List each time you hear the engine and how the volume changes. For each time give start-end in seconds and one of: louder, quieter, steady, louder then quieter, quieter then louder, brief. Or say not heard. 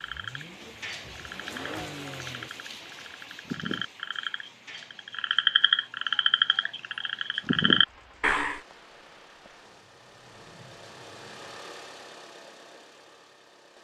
0.0-2.5 brief
7.8-13.8 louder then quieter.